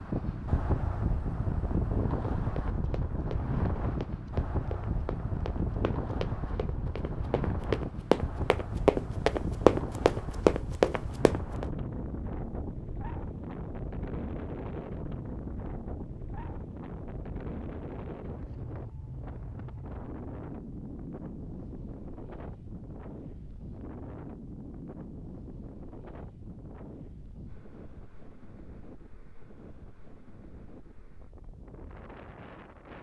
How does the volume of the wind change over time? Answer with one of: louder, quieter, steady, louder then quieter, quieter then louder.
quieter.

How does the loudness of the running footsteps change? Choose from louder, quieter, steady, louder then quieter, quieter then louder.
louder.